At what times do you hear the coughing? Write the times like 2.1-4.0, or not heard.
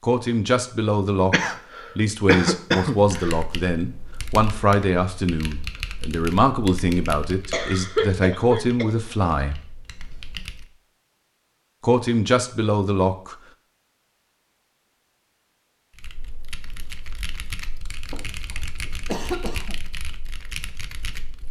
1.3-3.4, 7.5-8.9, 18.1-19.8.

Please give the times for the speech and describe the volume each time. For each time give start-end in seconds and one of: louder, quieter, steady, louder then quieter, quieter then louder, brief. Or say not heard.
0.0-9.6 steady
11.8-13.3 brief.